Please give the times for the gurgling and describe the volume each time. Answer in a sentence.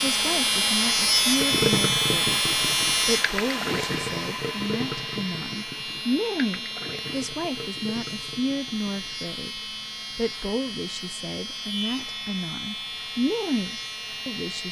You can hear the gurgling from 1.4 to 9.2 s, getting quieter.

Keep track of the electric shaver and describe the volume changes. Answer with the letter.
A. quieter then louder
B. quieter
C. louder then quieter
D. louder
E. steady
B.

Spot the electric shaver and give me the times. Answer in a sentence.
The electric shaver can be heard from 0.0 to 14.6 s.